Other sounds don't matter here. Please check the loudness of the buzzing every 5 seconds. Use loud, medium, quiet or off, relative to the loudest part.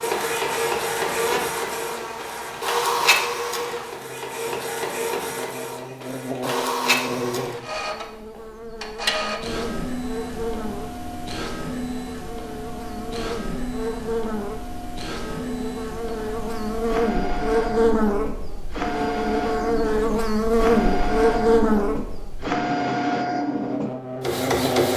medium, medium, medium, loud, loud.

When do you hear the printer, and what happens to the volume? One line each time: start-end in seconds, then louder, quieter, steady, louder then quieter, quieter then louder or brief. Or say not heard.
0.0-24.9 quieter then louder.